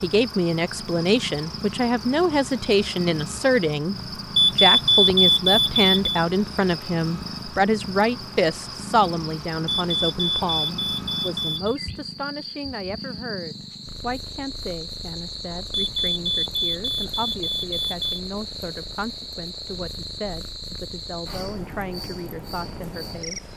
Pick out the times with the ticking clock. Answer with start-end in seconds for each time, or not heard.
not heard.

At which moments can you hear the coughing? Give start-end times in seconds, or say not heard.
not heard.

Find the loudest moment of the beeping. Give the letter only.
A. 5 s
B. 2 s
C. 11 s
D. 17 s
A.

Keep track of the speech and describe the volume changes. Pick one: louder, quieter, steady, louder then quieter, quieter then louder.
quieter.